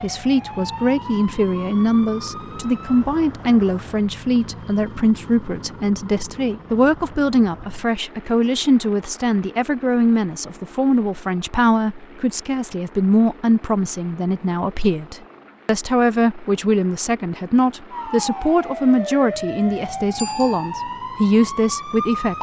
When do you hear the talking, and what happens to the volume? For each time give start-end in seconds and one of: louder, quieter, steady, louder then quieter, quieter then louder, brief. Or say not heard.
0.0-22.3 steady.